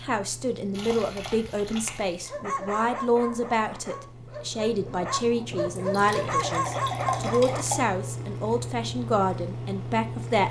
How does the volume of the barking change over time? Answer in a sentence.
The loudness of the barking goes down, then up.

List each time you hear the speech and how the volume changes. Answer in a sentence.
You can hear the speech from 0.0 to 10.4 s, at a steady volume.